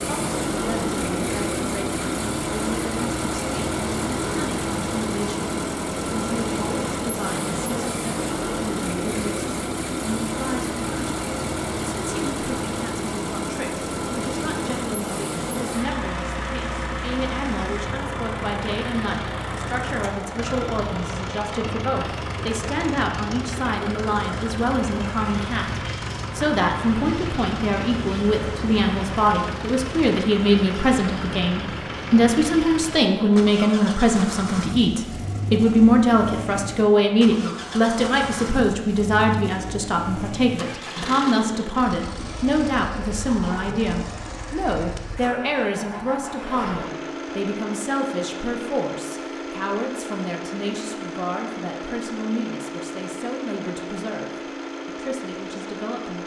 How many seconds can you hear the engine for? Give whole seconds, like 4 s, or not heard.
56 s.